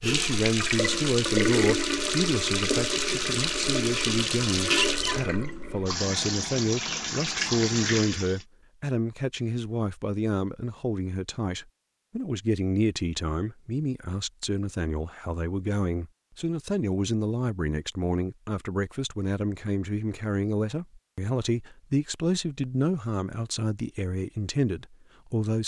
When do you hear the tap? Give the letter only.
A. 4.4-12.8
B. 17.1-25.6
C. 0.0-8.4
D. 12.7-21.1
C.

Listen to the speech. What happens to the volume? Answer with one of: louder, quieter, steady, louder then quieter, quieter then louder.
steady.